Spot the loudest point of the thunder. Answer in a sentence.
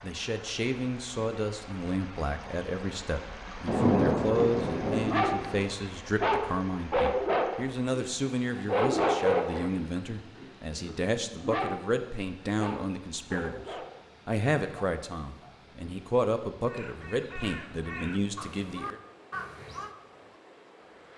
The volume of the thunder peaks at 4 seconds.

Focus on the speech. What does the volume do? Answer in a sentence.
The volume of the speech stays about the same.